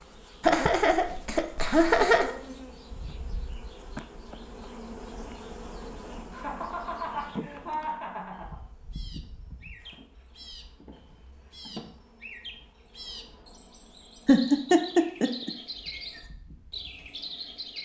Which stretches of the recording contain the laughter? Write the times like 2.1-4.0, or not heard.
0.4-2.4, 6.3-8.6, 14.2-15.5.